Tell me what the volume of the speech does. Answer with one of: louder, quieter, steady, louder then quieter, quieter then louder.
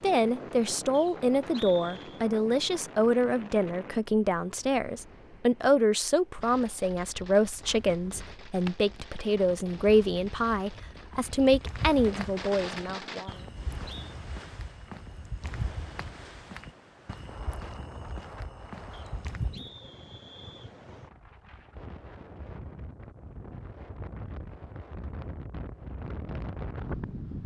steady.